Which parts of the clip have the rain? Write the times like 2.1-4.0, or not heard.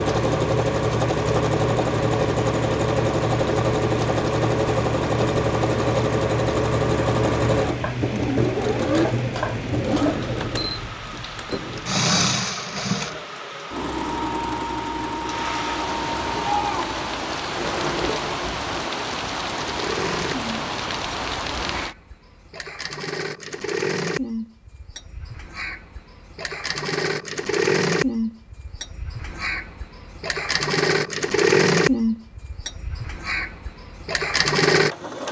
0.0-21.9.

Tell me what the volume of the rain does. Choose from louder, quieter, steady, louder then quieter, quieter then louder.
louder.